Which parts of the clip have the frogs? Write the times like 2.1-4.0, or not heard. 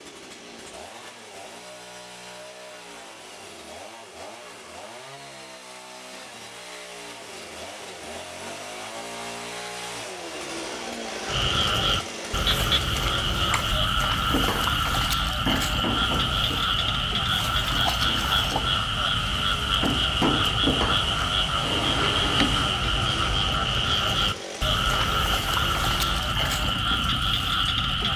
11.2-28.1.